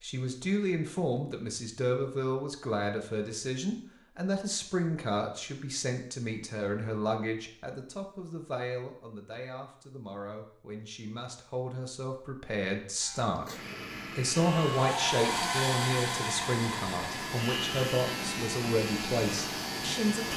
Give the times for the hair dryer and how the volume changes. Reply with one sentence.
The hair dryer can be heard from 14.3 to 20.3 s, getting quieter.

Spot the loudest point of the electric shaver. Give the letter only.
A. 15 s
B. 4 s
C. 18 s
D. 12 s
C.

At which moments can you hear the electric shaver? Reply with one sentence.
You can hear the electric shaver from 13.0 to 20.3 s.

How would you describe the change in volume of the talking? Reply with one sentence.
The loudness of the talking goes down, then up.